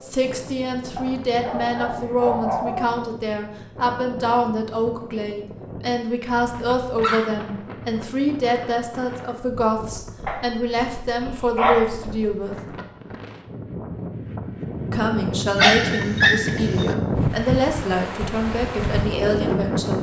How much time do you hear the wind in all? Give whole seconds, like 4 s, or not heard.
20 s.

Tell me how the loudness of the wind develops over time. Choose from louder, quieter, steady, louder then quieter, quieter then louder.
louder.